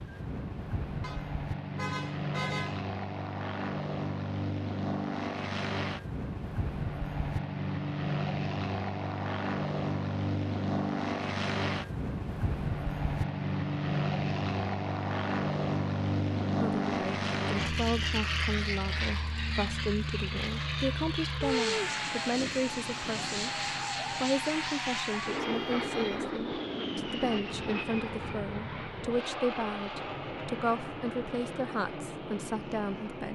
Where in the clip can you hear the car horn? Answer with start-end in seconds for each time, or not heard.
1.0-2.9, 25.4-26.2.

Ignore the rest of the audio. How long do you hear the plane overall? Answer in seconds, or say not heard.
33 s.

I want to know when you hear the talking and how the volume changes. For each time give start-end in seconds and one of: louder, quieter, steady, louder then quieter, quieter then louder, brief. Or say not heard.
16.6-33.3 steady.